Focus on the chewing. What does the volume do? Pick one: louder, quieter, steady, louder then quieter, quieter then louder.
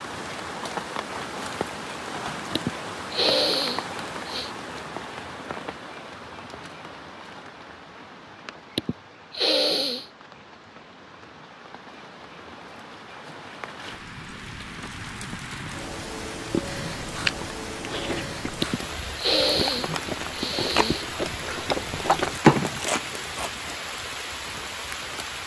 quieter then louder.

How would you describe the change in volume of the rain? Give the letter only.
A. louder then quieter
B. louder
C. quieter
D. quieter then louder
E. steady
D.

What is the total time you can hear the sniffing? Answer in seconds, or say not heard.
6 s.